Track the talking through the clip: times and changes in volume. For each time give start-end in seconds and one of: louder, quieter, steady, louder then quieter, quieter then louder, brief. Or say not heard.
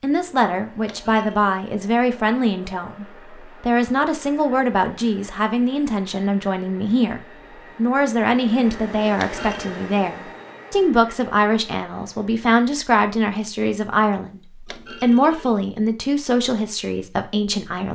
0.0-17.8 steady.